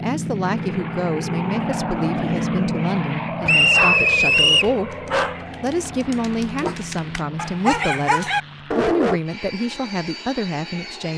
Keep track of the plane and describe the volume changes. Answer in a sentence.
The volume of the plane goes down.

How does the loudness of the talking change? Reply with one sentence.
The loudness of the talking stays about the same.